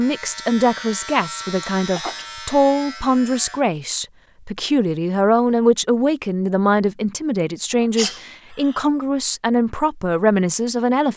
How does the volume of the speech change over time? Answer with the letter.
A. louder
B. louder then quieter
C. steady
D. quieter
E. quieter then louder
C.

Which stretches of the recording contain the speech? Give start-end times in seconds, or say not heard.
0.0-11.1.